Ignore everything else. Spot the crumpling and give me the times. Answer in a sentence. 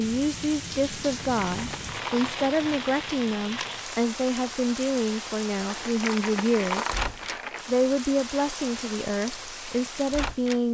The crumpling can be heard from 1.0 to 3.0 s and from 5.7 to 7.7 s.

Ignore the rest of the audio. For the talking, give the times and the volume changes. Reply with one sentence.
You can hear the talking from 0.0 to 6.9 s, at a steady volume; and briefly from 7.7 to 10.6 s.